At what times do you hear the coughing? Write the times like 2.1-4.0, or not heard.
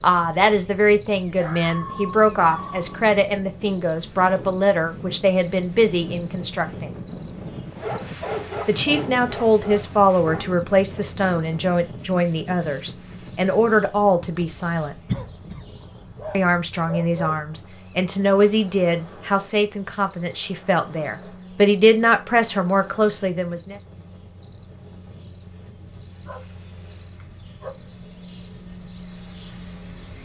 15.1-15.7.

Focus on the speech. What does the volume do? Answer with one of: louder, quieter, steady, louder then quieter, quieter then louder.
steady.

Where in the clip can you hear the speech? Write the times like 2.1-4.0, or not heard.
0.0-6.9, 8.7-14.9, 16.3-23.8.